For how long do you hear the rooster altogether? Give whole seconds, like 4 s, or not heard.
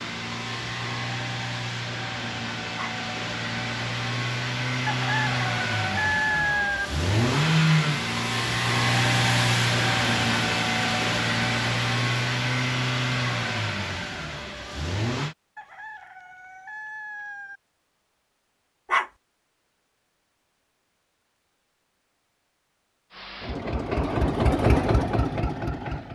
4 s.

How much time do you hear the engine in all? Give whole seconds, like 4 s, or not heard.
18 s.